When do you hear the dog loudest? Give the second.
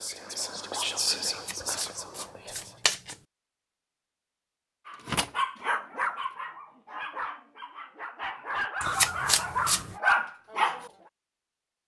10 s.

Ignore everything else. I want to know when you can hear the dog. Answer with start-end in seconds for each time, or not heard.
4.8-10.9.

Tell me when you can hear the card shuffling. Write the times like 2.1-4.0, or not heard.
1.4-3.1, 8.8-9.9.